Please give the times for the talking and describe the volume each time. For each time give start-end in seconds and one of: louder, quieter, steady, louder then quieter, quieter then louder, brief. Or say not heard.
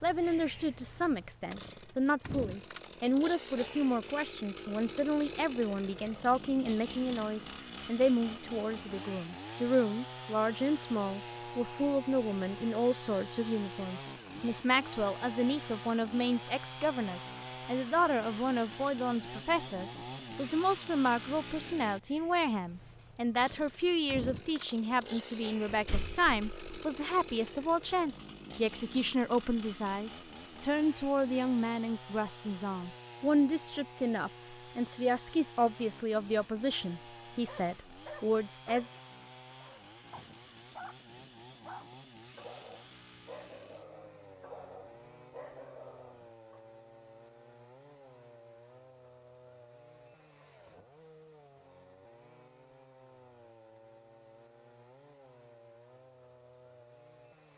0.0-38.9 steady.